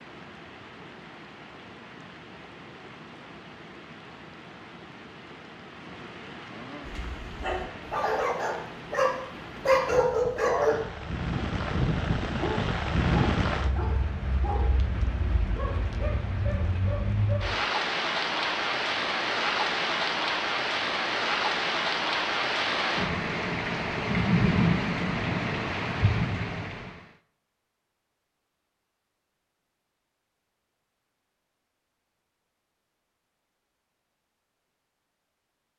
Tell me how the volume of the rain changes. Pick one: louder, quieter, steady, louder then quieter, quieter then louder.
louder.